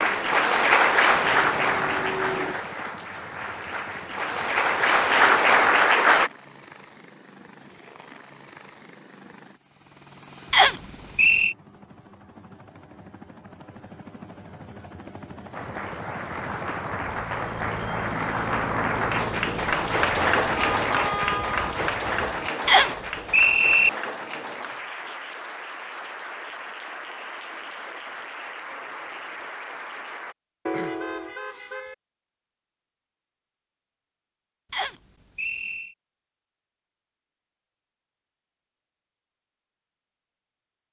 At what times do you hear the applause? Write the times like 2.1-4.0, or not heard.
0.0-6.3, 15.5-30.4.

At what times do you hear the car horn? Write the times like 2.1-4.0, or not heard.
1.1-2.6, 20.6-21.6, 30.6-31.9.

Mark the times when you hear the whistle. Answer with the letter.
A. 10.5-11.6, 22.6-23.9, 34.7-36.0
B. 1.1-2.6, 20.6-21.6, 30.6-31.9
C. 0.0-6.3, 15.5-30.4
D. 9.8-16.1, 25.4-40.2
A.